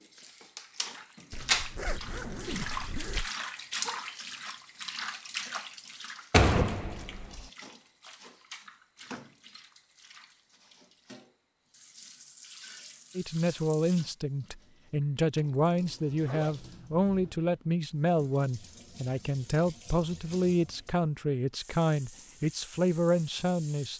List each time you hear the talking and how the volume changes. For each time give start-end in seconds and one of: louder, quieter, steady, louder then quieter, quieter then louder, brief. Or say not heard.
13.2-23.9 steady.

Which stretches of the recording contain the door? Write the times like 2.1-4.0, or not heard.
6.3-7.4.